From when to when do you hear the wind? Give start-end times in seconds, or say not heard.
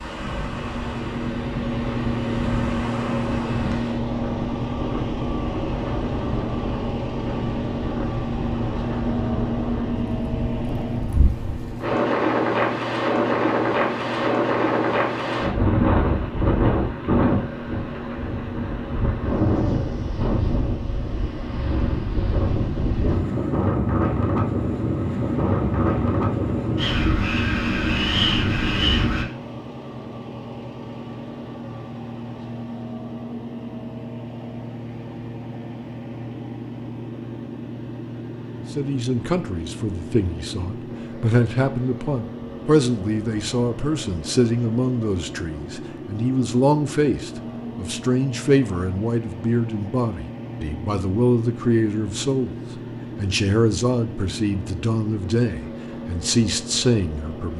0.0-29.2.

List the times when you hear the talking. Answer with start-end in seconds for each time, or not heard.
38.7-52.5, 53.1-57.5.